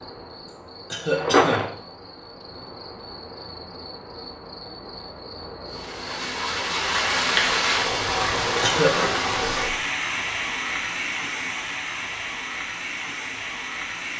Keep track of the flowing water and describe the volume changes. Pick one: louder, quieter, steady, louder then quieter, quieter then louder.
quieter.